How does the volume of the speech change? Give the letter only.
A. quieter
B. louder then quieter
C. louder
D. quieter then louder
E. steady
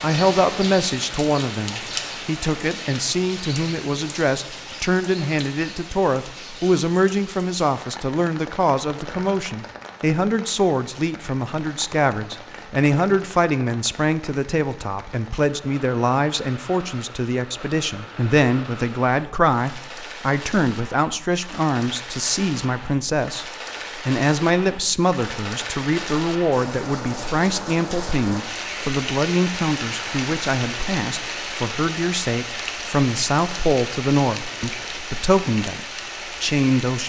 E.